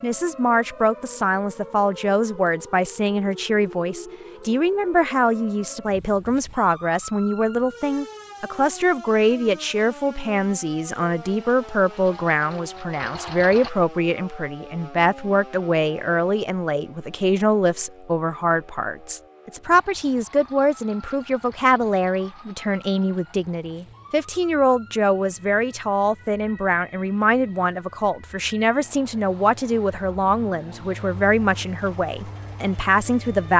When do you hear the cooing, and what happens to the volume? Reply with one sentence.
You can't hear the cooing here.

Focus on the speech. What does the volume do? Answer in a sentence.
The volume of the speech stays about the same.